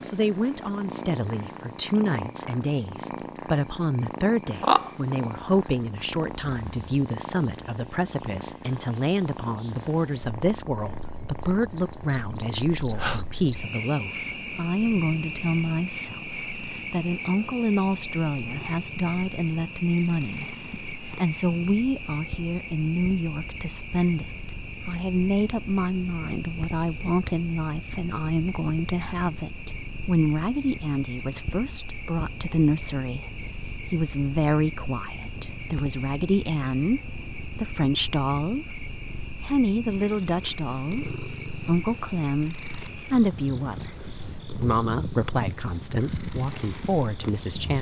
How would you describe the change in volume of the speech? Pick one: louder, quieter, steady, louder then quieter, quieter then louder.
steady.